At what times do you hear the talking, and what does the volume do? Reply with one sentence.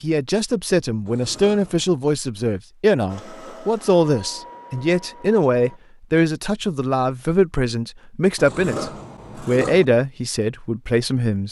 The talking can be heard from 0.0 to 11.4 s, at a steady volume.